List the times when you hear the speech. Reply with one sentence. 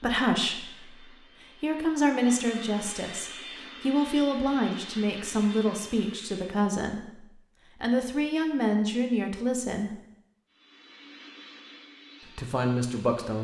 You can hear the speech from 0.0 to 10.0 s and from 12.3 to 13.3 s.